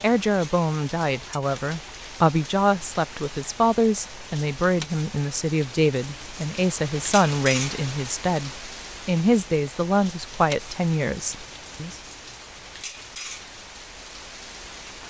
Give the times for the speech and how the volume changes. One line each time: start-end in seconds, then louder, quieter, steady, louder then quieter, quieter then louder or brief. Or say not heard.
0.0-11.9 steady.